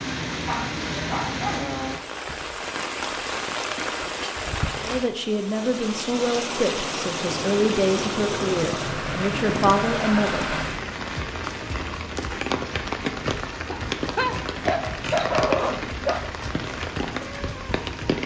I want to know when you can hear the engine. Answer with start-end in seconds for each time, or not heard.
7.2-10.7.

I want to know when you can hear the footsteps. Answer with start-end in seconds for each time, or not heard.
not heard.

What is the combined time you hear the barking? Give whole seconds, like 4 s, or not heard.
4 s.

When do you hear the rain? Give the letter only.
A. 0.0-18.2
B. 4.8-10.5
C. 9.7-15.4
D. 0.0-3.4
A.